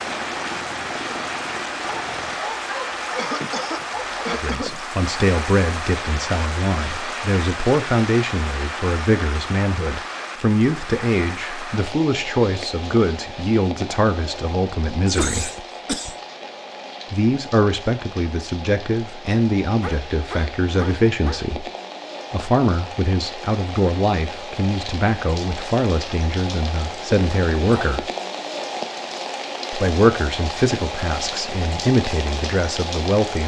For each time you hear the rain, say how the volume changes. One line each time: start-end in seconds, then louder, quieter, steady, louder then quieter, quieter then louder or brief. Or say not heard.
0.0-33.4 quieter then louder.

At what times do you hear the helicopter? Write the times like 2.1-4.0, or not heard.
0.0-2.5.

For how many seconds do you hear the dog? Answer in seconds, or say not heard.
4 s.